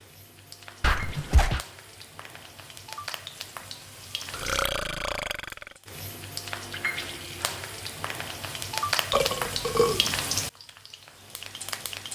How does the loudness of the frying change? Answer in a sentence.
The volume of the frying goes up.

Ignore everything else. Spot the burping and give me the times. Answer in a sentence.
You can hear the burping from 0.8 to 1.6 s, from 4.3 to 5.7 s and from 9.1 to 10.2 s.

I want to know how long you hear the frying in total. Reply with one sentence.
You can hear the frying for 12 seconds altogether.